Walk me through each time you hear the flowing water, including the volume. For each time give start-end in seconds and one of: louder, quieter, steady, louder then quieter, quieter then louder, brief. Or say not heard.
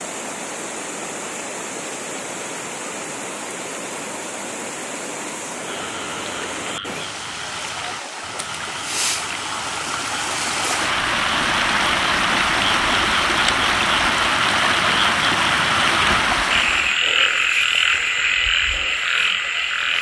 0.0-17.0 louder.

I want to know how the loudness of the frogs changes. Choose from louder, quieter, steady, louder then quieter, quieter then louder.
louder.